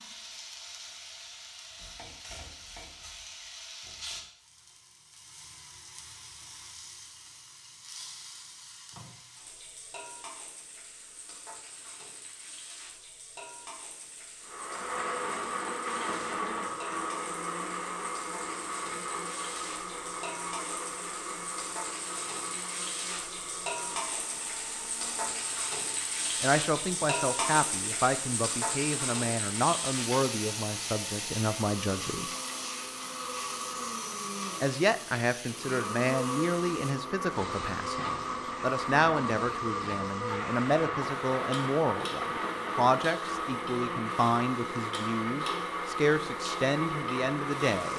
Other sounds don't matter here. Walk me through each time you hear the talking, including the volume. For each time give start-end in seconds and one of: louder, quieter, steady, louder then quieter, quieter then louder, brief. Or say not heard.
26.4-32.4 steady
34.6-47.9 steady.